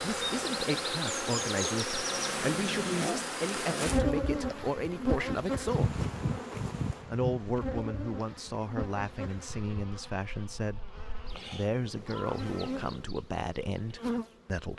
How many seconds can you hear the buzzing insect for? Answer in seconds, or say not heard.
15 s.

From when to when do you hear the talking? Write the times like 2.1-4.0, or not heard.
0.0-6.0, 7.0-14.7.